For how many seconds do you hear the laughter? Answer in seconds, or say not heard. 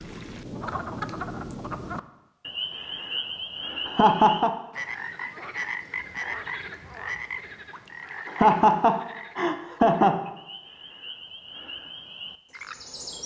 3 s.